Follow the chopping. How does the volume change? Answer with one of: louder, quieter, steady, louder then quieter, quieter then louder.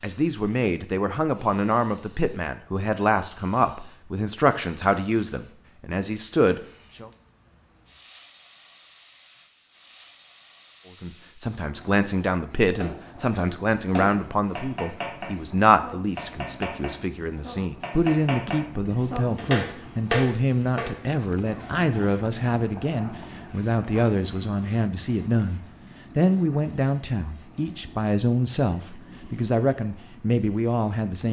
louder.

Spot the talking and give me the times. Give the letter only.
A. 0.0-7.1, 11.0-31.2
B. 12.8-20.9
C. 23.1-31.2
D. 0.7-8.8
A.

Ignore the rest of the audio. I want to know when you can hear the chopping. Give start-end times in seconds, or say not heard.
12.8-20.9.